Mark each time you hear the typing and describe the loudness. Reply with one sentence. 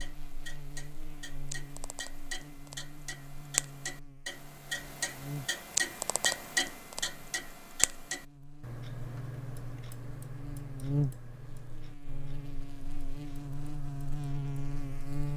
You can't hear the typing here.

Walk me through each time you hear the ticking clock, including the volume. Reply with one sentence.
You can hear the ticking clock from 0.0 to 15.3 s, getting louder then quieter.